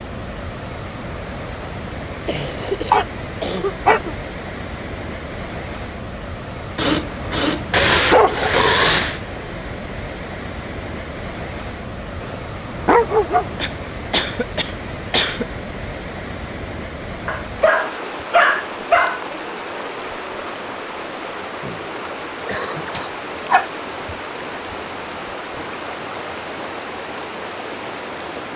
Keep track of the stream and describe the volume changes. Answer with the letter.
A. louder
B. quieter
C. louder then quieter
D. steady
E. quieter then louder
D.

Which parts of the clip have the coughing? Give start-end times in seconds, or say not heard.
2.2-4.2, 13.6-15.4, 21.6-23.2.